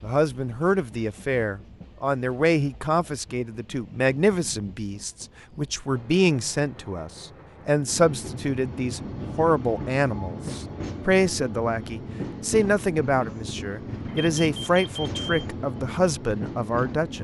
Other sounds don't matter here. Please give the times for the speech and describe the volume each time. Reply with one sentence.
The speech can be heard from 0.0 to 17.1 s, at a steady volume.